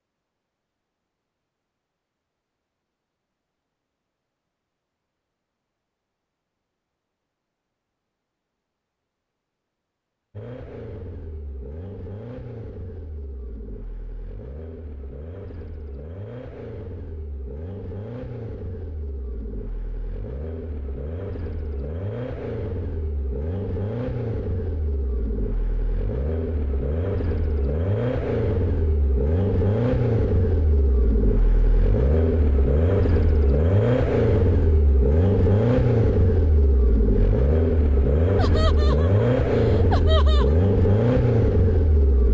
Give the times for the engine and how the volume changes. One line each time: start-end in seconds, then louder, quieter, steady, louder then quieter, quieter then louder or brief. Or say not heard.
10.3-42.2 louder.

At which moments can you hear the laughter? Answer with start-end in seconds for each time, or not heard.
38.4-40.5.